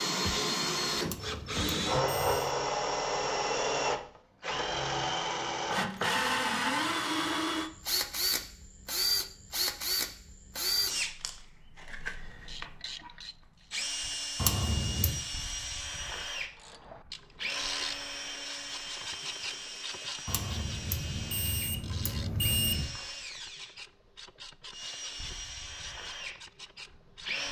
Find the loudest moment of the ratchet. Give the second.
18 s.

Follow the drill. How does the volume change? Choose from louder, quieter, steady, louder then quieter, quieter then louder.
quieter.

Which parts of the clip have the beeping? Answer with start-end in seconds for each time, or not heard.
1.0-2.5, 14.3-15.2, 20.2-22.9.